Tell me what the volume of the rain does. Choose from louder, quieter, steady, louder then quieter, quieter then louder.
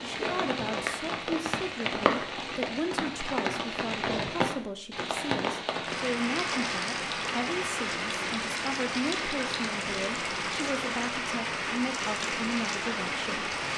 steady.